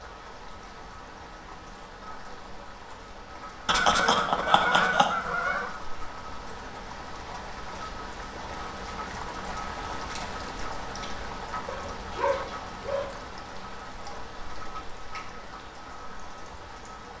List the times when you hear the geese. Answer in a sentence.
The geese can be heard from 3.6 to 5.8 s.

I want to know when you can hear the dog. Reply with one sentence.
You can hear the dog from 11.7 to 13.1 s.